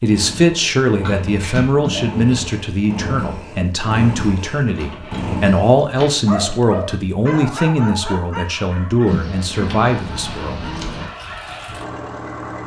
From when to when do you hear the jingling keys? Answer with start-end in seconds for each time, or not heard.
1.0-2.2, 4.7-6.6, 9.1-11.1.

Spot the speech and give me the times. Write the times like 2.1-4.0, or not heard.
0.0-10.8.